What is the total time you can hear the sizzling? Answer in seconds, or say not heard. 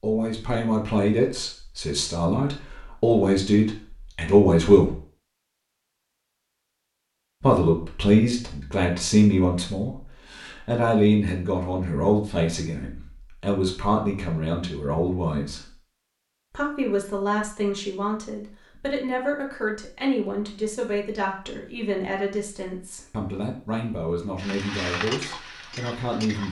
2 s.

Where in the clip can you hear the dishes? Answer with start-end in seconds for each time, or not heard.
not heard.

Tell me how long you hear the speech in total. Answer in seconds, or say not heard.
23 s.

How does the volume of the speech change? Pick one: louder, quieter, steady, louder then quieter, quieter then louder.
quieter.